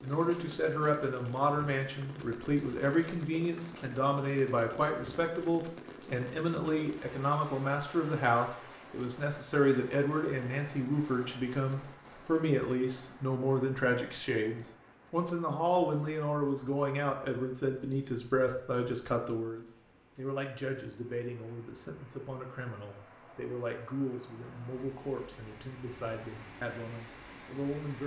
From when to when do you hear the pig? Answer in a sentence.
You can't hear the pig here.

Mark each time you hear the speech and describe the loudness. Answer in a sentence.
The speech can be heard from 0.0 to 28.0 s, getting quieter.